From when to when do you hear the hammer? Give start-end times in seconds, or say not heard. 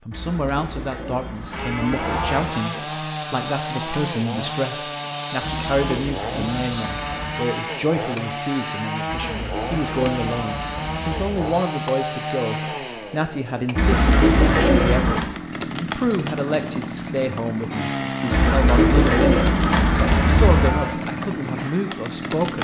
not heard.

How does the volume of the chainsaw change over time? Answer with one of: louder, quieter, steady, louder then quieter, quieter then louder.
steady.